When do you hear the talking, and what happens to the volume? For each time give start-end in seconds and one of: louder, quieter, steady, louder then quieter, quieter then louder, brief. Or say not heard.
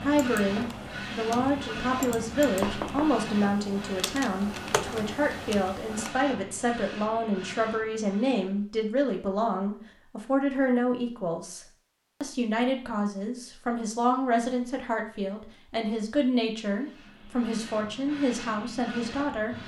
0.0-11.6 steady
12.2-19.6 steady.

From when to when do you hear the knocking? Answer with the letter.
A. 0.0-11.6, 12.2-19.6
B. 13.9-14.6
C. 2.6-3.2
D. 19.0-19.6
C.